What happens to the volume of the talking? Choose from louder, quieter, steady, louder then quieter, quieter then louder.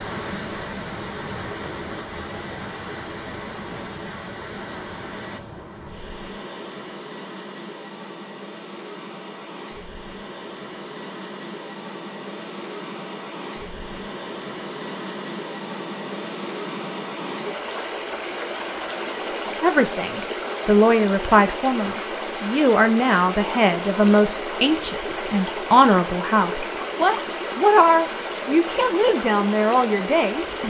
steady.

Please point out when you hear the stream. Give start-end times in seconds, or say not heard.
0.0-30.6.